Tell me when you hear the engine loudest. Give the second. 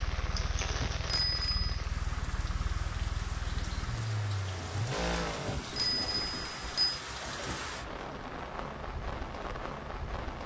5 s.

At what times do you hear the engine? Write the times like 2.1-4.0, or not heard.
0.0-5.6.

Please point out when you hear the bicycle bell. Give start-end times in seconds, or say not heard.
0.8-1.8, 5.5-7.0.